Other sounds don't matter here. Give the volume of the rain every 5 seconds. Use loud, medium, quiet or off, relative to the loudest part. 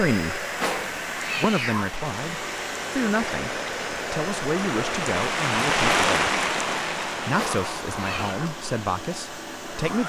medium, loud.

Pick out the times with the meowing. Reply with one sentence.
The meowing can be heard from 0.6 to 1.9 s and from 7.3 to 8.3 s.